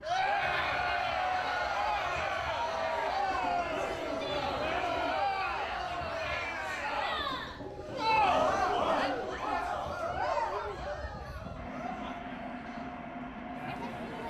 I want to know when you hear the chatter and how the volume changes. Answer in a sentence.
You can hear the chatter from 0.0 to 14.2 s, getting quieter.